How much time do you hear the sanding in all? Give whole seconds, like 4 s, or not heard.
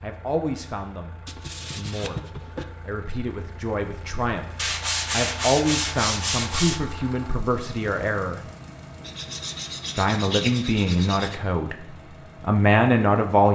6 s.